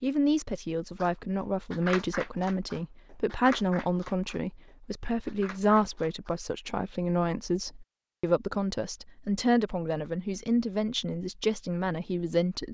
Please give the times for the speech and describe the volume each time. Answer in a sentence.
You can hear the speech from 0.0 to 12.6 s, at a steady volume.